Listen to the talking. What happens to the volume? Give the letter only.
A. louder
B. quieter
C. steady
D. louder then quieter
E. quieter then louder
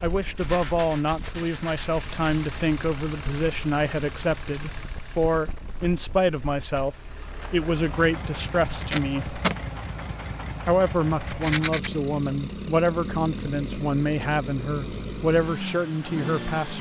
C.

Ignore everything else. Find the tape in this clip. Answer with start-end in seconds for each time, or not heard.
8.6-9.6.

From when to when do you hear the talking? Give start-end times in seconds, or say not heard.
0.0-9.4, 10.7-16.7.